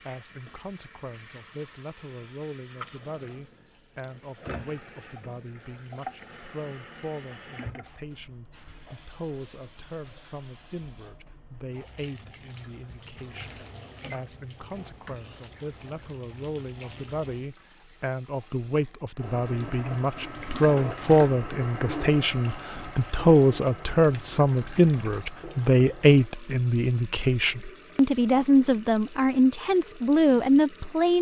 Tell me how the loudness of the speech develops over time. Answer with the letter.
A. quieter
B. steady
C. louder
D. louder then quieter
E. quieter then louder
C.